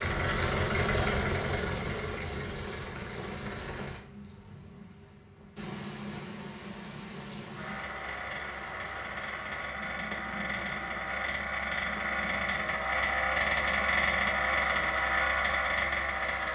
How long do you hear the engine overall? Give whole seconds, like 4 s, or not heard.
13 s.